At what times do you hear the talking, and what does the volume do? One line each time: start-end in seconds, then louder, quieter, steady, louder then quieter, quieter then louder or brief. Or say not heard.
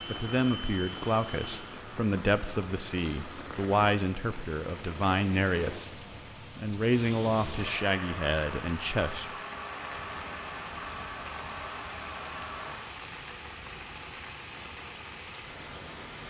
0.1-9.3 steady.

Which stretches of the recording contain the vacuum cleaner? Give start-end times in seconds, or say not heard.
0.0-1.9, 7.0-12.9.